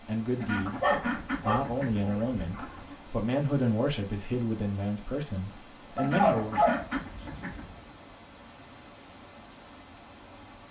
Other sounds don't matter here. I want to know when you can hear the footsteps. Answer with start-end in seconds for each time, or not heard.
not heard.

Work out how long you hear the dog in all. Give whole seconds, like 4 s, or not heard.
3 s.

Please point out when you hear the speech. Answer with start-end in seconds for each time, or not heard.
0.0-6.7.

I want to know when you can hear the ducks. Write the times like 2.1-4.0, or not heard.
0.3-3.0, 6.0-7.9.